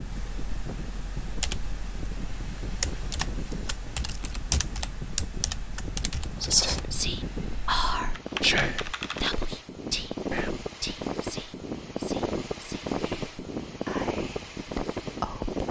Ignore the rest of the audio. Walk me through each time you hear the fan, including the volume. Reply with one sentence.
You can hear the fan from 0.0 to 15.6 s, getting louder.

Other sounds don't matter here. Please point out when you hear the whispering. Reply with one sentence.
The whispering can be heard from 6.4 to 15.6 s.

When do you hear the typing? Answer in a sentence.
You can hear the typing from 0.0 to 9.4 s.